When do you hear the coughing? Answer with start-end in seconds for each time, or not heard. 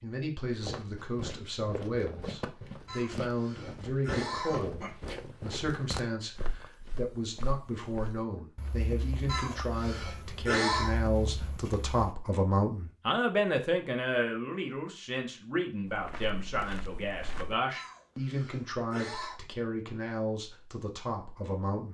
2.9-4.9, 9.2-10.9, 17.7-19.4.